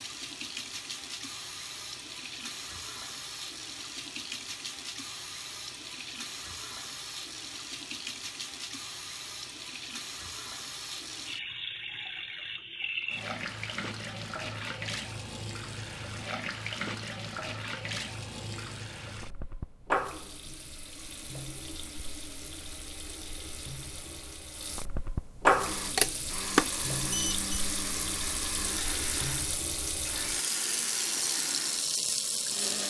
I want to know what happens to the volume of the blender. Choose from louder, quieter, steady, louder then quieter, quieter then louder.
steady.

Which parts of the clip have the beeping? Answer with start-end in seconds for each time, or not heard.
25.9-27.6.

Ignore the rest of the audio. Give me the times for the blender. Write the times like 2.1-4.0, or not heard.
25.6-32.8.